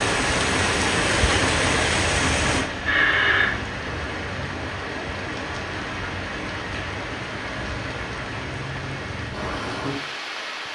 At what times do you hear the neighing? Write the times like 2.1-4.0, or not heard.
2.9-3.5.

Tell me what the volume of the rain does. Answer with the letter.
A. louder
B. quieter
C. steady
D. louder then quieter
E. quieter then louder
B.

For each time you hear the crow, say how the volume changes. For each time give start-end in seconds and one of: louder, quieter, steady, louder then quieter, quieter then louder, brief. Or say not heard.
not heard.